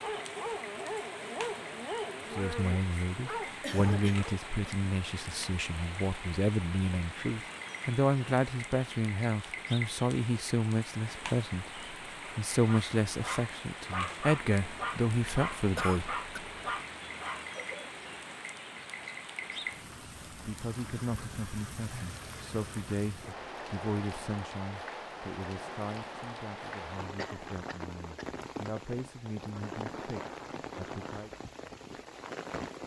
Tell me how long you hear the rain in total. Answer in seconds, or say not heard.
33 s.